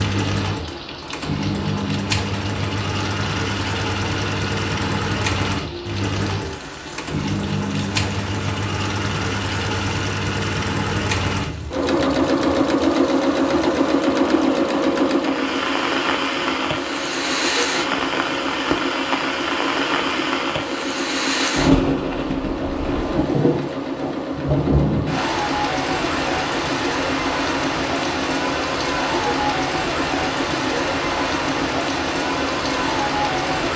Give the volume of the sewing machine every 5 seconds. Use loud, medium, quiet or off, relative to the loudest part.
medium, medium, loud, medium, medium, medium, medium.